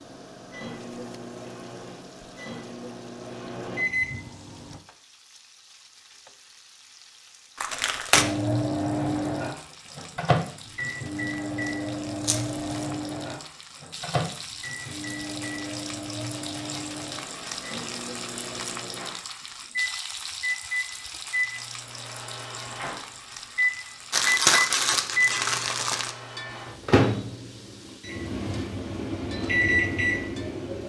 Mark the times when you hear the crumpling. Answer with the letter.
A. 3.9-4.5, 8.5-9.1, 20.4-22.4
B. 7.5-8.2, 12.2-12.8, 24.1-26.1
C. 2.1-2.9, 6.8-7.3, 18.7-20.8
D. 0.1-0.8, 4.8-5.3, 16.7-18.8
B.